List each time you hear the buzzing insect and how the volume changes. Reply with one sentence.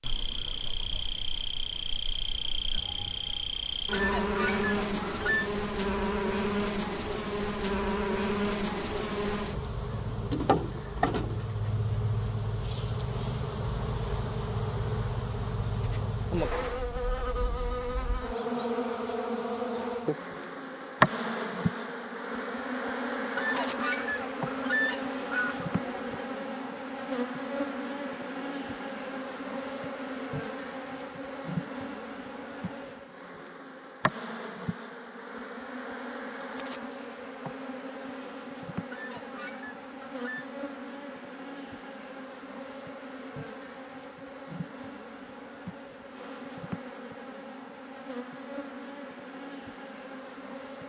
You can hear the buzzing insect from 0.0 to 50.8 s, getting quieter.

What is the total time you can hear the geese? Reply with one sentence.
You can hear the geese for 6 seconds altogether.